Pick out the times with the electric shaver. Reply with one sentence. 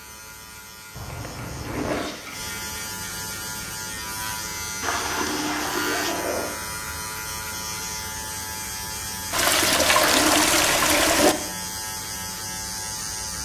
The electric shaver can be heard from 0.0 to 13.4 s.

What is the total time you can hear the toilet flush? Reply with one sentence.
You can hear the toilet flush for 5 seconds altogether.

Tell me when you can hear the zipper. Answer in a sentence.
The zipper can be heard from 0.9 to 2.1 s, from 5.9 to 6.7 s and from 10.0 to 10.4 s.